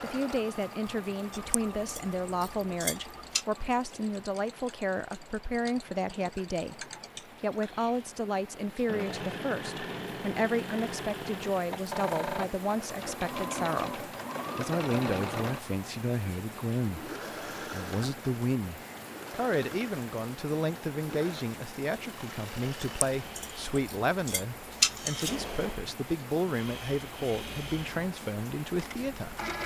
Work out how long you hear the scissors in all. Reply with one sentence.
The scissors can be heard for 5 seconds in total.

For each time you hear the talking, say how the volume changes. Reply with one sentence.
You can hear the talking from 0.0 to 29.4 s, at a steady volume.